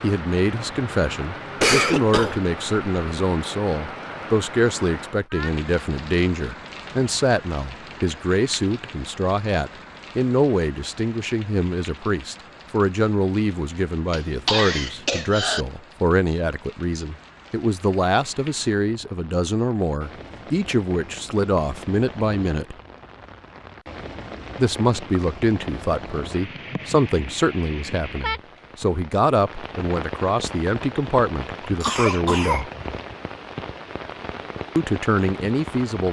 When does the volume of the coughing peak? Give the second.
2 s.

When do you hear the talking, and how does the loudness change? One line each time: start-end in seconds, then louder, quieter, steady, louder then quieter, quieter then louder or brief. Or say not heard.
0.0-22.8 steady
24.6-32.7 steady
34.8-36.0 brief.